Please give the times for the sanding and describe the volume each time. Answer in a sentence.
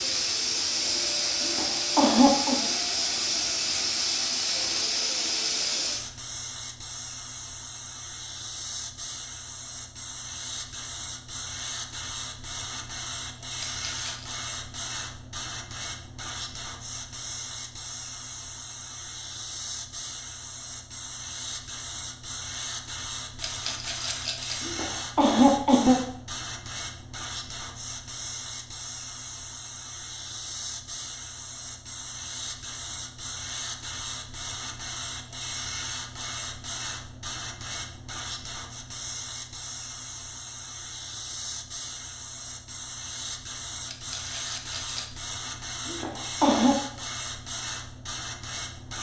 You can't hear the sanding here.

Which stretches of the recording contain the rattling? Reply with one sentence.
You can hear the rattling from 13.7 to 14.3 s, from 23.4 to 24.6 s and from 43.9 to 45.0 s.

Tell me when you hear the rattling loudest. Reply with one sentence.
The volume of the rattling peaks at 24 seconds.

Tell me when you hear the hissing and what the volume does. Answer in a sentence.
You can hear the hissing from 0.0 to 48.9 s, getting quieter.